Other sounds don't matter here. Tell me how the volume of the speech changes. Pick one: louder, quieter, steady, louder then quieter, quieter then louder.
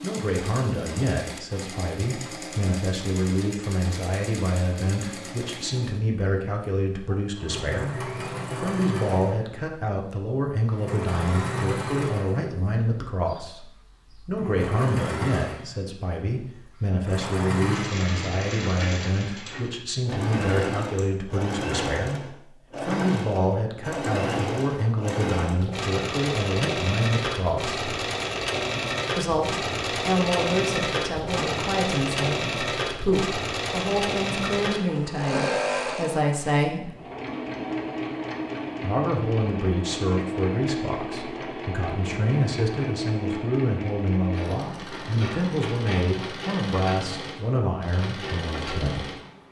steady.